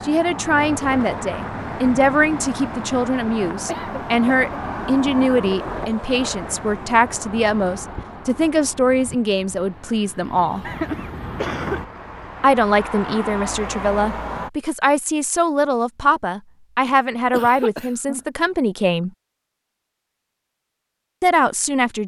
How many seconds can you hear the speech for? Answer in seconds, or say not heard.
18 s.